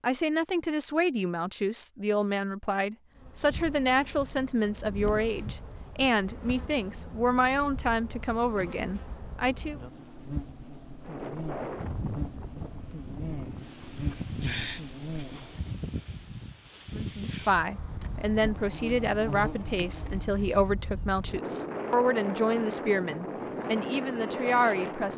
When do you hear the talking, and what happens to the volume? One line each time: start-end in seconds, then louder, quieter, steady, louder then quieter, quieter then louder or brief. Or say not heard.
0.0-9.8 steady
16.9-25.1 steady.